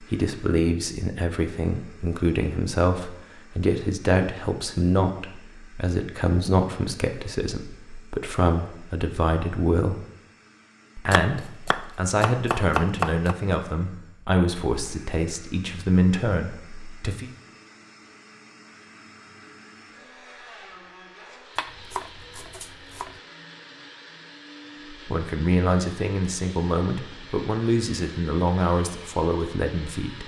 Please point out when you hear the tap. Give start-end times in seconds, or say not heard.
not heard.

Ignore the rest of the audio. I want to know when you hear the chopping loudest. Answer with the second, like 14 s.
13 s.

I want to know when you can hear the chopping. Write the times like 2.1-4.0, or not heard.
11.1-13.3, 21.6-23.2.